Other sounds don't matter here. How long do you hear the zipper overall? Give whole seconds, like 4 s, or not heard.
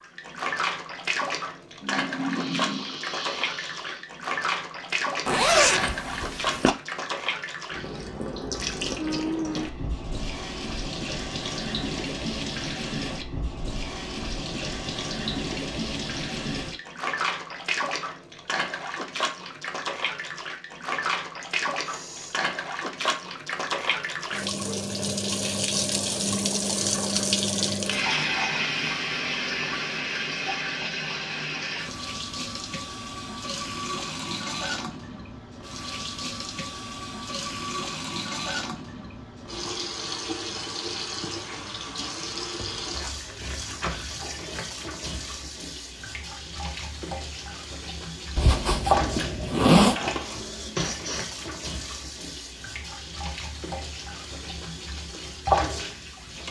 3 s.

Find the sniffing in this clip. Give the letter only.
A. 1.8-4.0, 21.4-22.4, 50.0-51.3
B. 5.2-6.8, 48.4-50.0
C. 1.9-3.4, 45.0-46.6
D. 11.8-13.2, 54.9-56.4
A.